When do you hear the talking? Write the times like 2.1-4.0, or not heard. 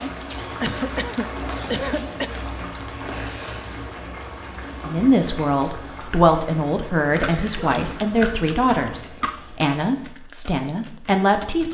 4.8-11.6.